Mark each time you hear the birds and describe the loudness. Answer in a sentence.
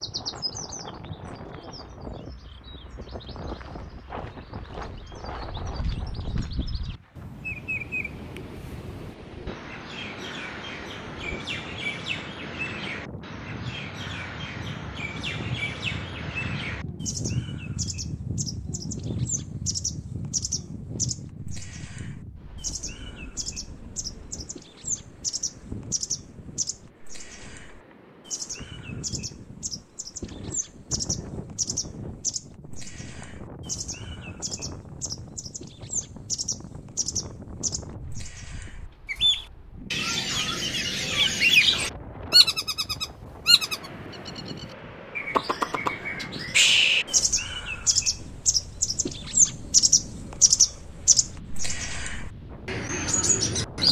The birds can be heard from 0.0 to 53.8 s, getting louder.